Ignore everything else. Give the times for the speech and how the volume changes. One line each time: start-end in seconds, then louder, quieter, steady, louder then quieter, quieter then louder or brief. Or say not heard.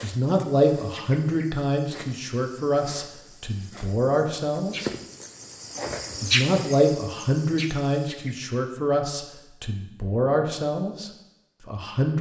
0.0-4.9 quieter then louder
6.2-12.1 quieter.